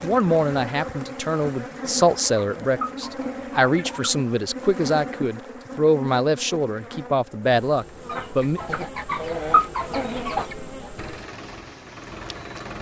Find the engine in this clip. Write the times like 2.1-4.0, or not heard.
10.9-12.7.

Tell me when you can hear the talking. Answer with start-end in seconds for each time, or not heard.
0.0-8.6.